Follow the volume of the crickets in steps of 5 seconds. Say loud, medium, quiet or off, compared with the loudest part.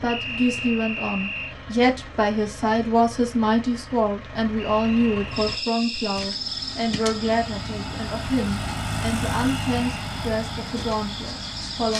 off, loud, loud.